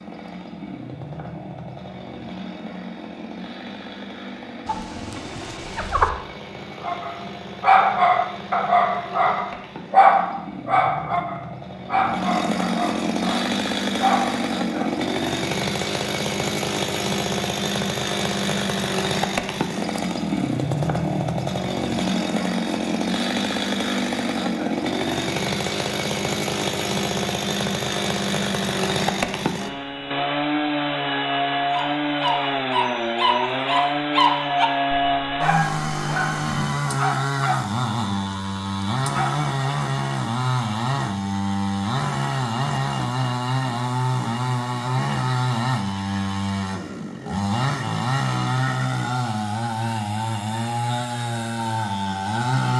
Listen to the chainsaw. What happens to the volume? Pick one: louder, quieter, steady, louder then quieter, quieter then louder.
louder.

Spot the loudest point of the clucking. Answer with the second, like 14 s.
6 s.